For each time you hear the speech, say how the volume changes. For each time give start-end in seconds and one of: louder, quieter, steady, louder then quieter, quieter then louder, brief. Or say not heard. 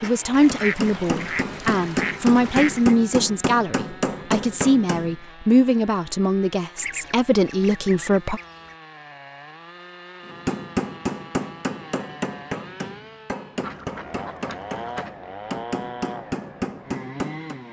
0.0-8.4 steady.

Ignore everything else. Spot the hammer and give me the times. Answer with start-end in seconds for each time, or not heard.
0.0-5.2, 10.2-17.6.